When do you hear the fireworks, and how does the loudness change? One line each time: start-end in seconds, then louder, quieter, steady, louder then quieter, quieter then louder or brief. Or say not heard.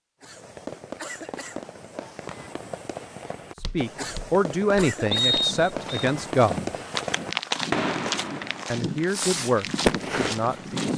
0.2-10.7 louder.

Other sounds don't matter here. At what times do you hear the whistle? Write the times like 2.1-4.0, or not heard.
5.1-6.0.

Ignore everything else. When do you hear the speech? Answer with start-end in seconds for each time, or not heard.
3.5-6.7, 8.7-10.9.